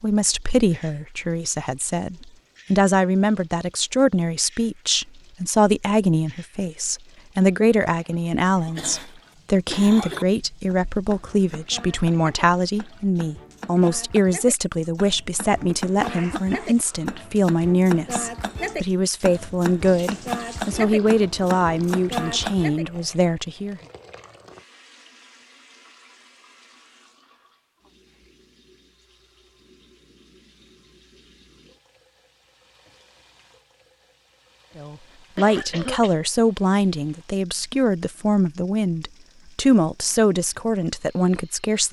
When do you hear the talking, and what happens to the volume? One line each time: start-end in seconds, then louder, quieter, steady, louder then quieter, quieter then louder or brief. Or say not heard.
0.0-23.8 steady
34.8-41.8 steady.